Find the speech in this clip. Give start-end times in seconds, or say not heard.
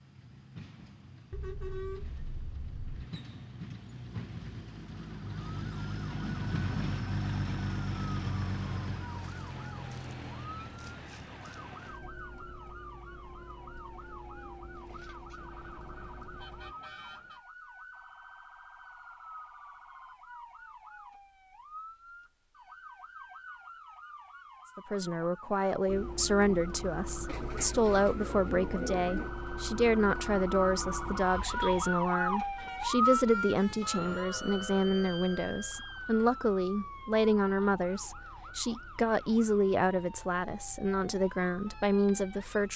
24.8-42.7.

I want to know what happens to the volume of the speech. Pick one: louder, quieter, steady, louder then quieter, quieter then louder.
steady.